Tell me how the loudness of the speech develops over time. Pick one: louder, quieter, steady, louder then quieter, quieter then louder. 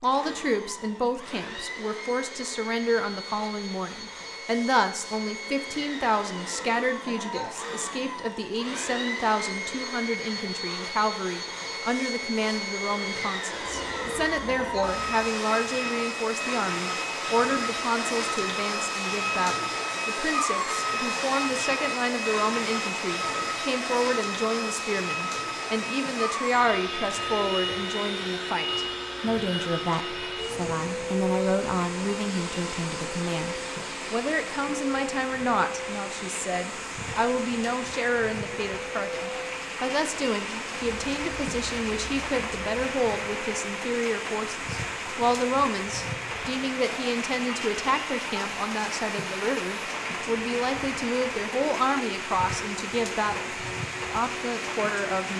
steady.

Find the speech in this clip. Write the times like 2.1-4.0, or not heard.
0.0-55.3.